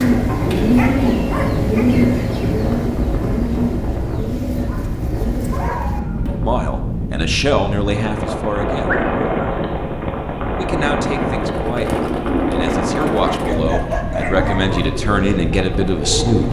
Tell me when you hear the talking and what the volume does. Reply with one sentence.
The talking can be heard briefly from 6.4 to 8.9 s; and from 10.6 to 16.4 s, getting louder.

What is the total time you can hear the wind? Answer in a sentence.
You can hear the wind for 16 seconds altogether.